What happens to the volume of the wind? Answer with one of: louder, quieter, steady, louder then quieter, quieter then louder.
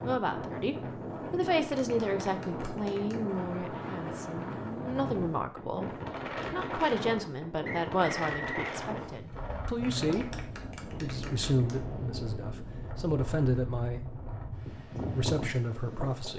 steady.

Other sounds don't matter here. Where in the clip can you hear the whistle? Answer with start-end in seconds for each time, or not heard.
7.7-8.8.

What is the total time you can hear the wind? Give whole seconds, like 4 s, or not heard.
16 s.